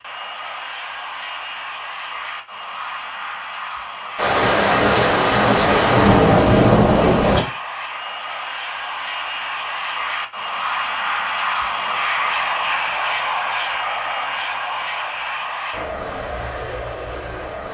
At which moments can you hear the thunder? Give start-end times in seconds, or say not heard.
4.2-7.4.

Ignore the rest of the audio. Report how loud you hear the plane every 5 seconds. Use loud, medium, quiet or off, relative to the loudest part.
medium, medium, loud, medium.